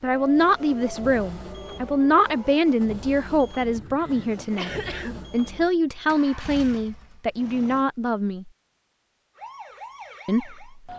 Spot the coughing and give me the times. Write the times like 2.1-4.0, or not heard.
3.8-5.3.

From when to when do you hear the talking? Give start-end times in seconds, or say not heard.
0.0-4.7, 5.3-8.5, 10.2-10.8.